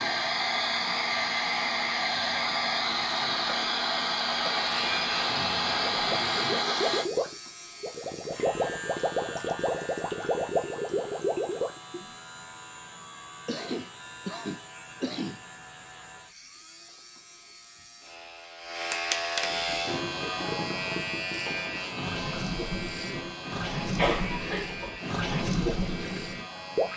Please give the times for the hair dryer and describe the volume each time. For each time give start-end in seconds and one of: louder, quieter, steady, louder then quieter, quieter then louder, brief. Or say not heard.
0.0-7.1 steady.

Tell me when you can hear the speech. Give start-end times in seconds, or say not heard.
not heard.